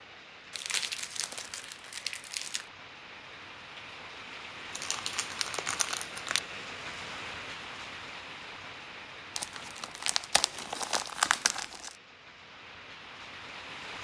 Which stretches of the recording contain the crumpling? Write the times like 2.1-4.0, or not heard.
0.5-2.6, 4.7-6.4, 9.3-11.9.